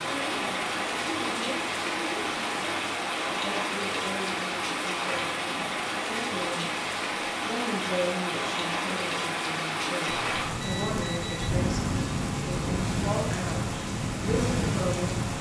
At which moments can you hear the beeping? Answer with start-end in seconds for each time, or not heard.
10.1-11.5.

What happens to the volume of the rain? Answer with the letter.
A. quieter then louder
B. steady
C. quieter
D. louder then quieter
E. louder
B.